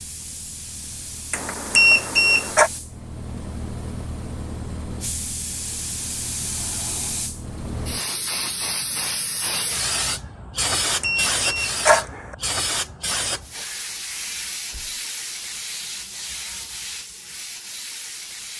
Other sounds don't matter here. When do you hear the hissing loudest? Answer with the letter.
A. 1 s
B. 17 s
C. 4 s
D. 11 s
D.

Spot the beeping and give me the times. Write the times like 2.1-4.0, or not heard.
1.3-2.7, 10.6-12.3.